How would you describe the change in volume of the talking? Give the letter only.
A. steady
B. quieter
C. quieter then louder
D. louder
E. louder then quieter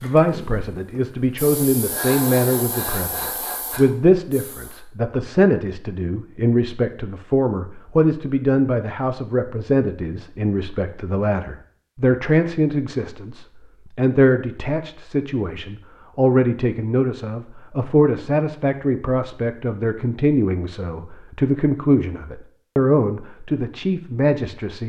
A.